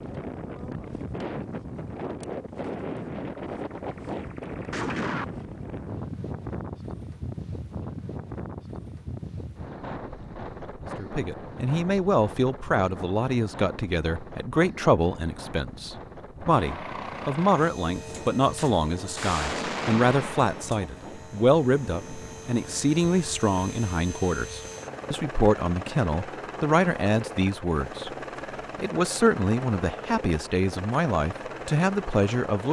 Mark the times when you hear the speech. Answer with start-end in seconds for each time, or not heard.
10.9-28.1, 28.8-32.6.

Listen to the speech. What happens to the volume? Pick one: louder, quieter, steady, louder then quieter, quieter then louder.
steady.